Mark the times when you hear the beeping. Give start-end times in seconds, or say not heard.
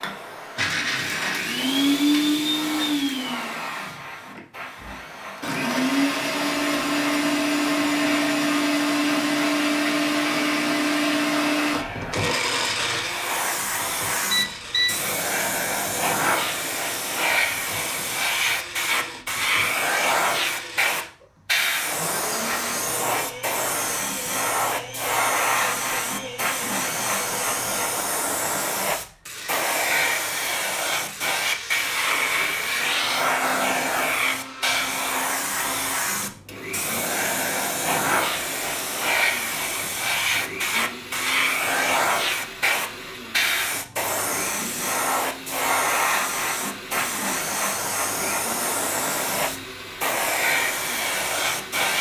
14.3-14.9.